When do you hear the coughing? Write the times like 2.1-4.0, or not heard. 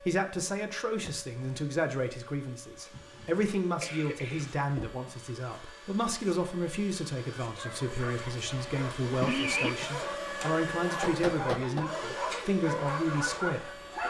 2.9-4.6, 8.4-9.9.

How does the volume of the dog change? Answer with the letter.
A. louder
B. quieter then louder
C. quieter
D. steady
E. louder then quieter
A.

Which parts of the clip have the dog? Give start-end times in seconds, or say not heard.
7.4-14.0.